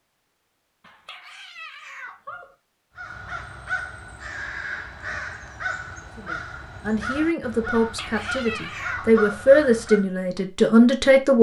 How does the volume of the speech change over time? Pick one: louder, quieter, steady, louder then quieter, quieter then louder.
louder.